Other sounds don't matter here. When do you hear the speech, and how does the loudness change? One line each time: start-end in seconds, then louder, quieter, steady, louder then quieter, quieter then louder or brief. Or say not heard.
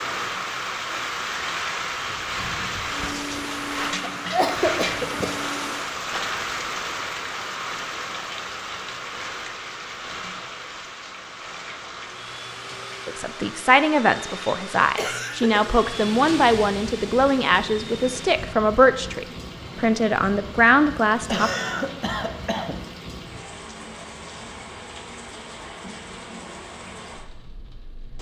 13.1-21.5 steady.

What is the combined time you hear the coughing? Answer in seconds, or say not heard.
4 s.